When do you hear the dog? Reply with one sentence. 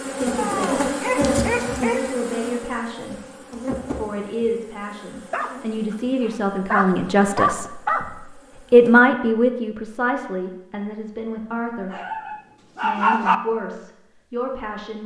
The dog can be heard from 0.3 to 2.1 s, from 5.3 to 8.1 s and from 11.9 to 13.3 s.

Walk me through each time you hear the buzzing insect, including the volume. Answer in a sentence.
The buzzing insect can be heard from 0.0 to 9.0 s, getting quieter.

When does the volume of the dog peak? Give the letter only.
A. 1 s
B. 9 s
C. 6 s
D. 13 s
D.